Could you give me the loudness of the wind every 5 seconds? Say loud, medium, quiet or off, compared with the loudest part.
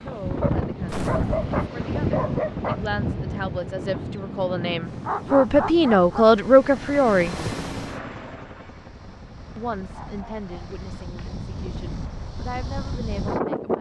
loud, quiet, loud.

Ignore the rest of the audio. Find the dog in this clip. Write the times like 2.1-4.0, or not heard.
0.4-2.8, 5.0-6.2, 9.9-11.3.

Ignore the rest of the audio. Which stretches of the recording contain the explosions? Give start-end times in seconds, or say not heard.
0.8-1.6.